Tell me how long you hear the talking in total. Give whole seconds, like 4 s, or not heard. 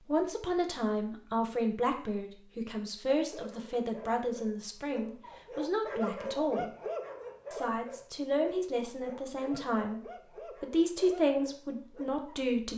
12 s.